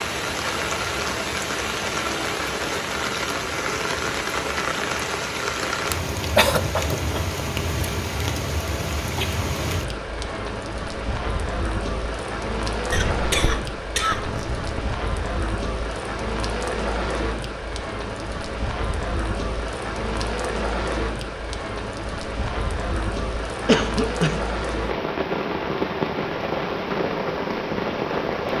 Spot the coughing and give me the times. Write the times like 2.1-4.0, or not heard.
5.9-7.8, 12.9-14.8, 23.6-24.4.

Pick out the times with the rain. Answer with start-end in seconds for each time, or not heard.
0.0-28.5.